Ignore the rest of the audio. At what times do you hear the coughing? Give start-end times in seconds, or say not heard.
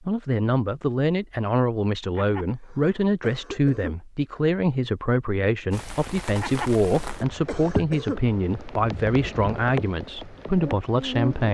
2.1-4.0, 6.3-8.2.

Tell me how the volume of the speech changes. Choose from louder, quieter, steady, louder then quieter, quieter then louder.
steady.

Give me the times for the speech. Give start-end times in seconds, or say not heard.
0.0-11.5.